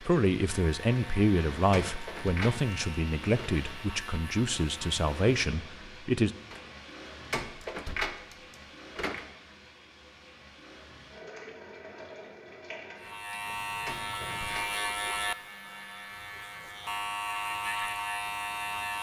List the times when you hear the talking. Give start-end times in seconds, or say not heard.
0.0-6.3.